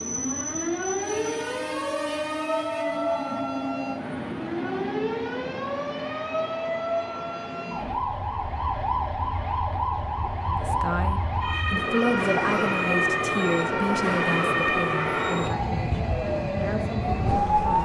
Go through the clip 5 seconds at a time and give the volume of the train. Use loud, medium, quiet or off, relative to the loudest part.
loud, medium, loud, loud.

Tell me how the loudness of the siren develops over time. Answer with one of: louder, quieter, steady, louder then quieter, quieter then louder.
steady.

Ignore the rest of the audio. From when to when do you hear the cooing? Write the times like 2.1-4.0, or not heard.
not heard.